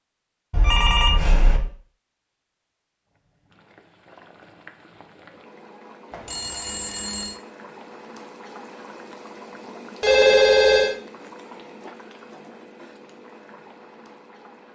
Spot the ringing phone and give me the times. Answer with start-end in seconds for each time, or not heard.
0.5-1.6, 6.1-7.4, 10.0-10.9.